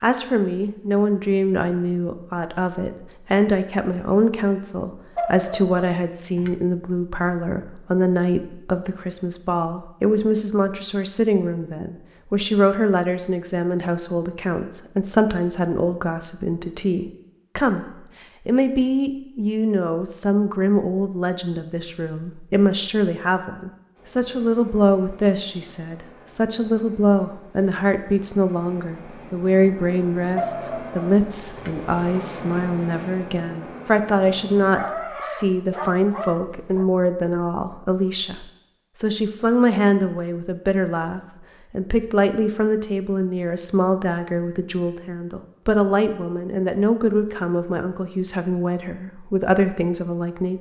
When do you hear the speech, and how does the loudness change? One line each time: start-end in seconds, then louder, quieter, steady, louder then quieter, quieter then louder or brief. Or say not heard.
0.0-17.9 steady
18.4-50.5 steady.